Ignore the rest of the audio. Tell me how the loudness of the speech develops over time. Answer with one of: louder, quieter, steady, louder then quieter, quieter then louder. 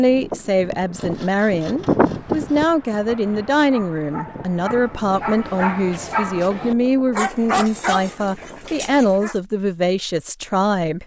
steady.